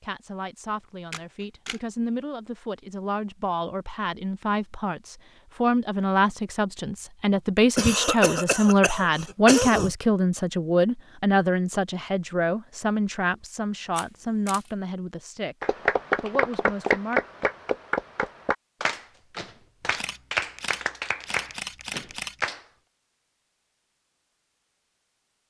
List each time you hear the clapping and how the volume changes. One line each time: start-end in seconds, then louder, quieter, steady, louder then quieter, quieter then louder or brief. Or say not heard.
15.6-22.6 quieter.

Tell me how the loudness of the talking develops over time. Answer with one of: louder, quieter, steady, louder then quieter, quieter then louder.
louder then quieter.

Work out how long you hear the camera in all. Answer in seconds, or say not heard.
4 s.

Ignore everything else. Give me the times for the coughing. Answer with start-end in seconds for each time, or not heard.
7.8-9.9.